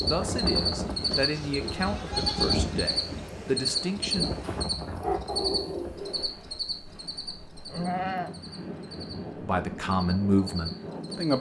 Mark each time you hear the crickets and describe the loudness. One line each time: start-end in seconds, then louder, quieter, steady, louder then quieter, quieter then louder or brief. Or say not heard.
0.0-11.3 quieter.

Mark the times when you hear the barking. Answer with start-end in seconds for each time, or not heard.
4.3-6.2.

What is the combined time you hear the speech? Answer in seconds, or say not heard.
6 s.